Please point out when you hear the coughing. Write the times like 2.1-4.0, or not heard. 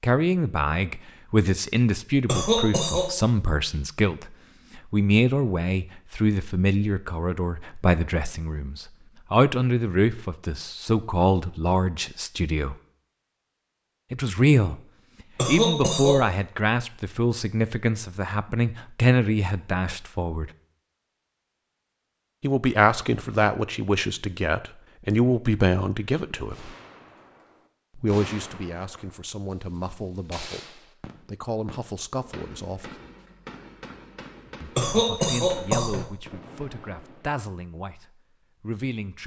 2.2-3.1, 15.3-16.2, 34.8-36.2.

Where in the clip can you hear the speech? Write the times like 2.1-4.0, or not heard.
0.0-12.8, 14.1-14.8, 15.4-20.5, 22.4-26.7, 27.9-33.0, 34.6-39.2.